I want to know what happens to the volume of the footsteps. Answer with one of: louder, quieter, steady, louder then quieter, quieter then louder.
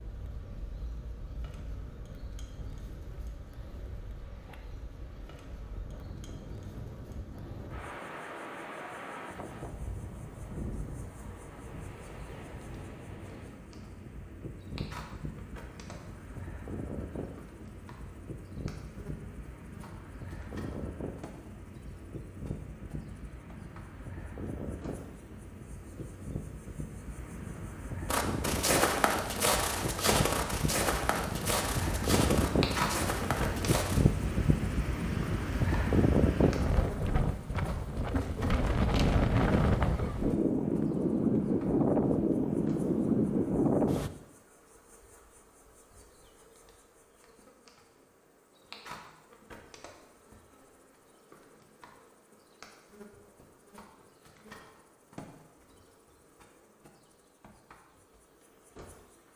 quieter.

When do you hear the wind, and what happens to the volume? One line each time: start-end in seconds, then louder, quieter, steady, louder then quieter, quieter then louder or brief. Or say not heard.
0.0-44.1 louder.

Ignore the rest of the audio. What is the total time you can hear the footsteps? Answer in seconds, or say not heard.
6 s.